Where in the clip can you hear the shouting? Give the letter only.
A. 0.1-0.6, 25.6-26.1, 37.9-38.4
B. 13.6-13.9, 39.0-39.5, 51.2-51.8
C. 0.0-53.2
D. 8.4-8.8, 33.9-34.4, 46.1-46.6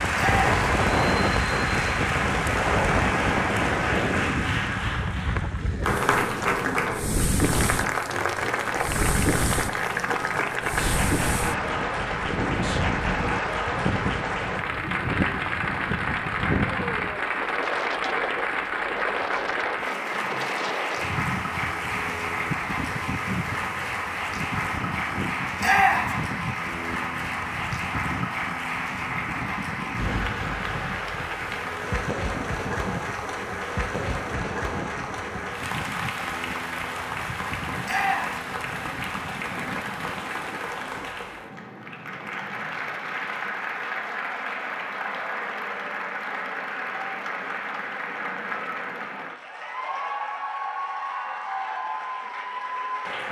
A.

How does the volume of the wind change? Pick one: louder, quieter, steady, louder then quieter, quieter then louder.
quieter.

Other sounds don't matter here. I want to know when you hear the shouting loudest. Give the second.
26 s.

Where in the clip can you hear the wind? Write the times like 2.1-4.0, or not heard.
0.0-41.1.